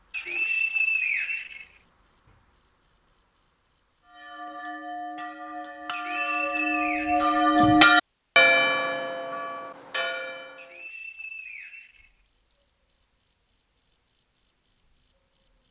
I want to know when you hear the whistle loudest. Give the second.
1 s.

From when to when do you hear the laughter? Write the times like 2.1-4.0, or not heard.
not heard.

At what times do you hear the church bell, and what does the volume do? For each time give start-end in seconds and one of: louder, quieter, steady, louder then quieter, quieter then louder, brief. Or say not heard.
4.0-10.8 louder then quieter.